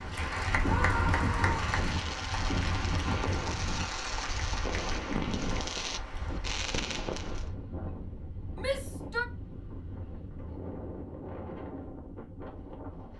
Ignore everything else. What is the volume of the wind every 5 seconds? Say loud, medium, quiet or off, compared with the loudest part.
loud, medium, medium.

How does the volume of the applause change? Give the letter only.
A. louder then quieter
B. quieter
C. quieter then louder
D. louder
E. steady
B.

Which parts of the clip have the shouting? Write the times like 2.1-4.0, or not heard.
0.6-1.8, 8.6-9.2.